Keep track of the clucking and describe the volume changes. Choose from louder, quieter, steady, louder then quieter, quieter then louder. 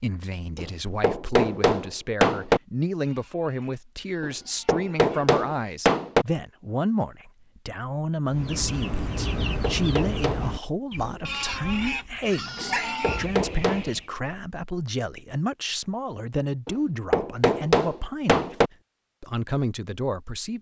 quieter then louder.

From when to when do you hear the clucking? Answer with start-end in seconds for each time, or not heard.
8.2-14.1.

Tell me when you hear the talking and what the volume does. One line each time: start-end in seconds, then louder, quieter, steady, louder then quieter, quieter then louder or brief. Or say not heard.
0.0-18.6 steady
19.2-20.5 brief.